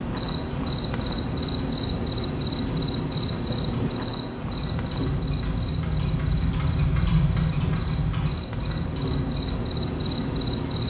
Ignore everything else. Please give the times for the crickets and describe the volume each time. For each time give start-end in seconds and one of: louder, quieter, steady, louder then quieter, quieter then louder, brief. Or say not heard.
0.0-10.8 quieter then louder.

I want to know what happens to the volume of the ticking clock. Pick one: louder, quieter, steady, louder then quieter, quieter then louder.
louder then quieter.